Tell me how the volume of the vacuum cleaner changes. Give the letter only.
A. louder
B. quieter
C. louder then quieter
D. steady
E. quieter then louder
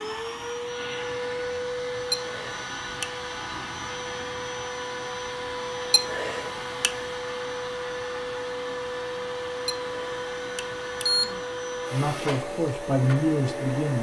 D.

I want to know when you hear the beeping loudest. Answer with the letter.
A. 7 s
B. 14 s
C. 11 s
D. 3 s
C.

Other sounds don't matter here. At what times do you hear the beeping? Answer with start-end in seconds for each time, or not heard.
2.1-3.0, 5.9-6.9, 9.7-11.2.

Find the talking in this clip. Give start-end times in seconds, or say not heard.
11.9-13.9.